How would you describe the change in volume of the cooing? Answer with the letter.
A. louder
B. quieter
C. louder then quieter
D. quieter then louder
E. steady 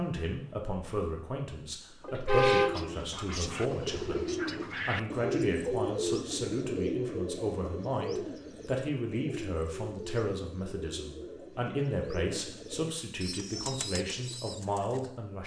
B.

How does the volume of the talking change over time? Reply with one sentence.
The volume of the talking stays about the same.